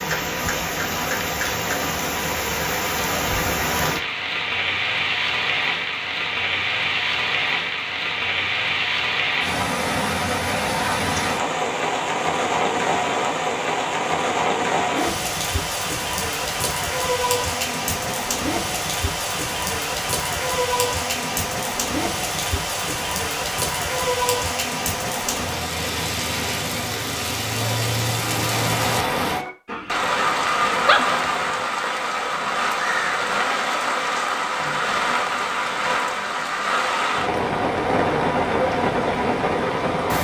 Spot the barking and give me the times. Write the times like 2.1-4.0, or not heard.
29.6-31.1.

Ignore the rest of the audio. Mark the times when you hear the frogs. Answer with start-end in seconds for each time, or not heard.
not heard.